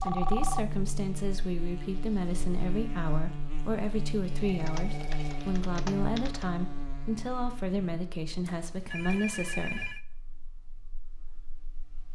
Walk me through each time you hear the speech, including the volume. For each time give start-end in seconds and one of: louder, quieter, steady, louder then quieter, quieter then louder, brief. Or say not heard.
0.0-9.9 steady.